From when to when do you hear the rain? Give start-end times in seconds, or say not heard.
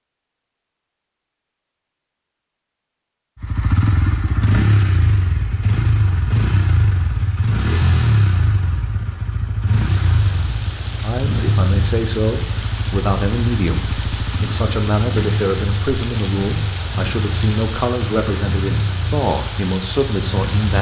9.7-20.7.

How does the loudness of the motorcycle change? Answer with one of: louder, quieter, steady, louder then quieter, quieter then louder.
quieter.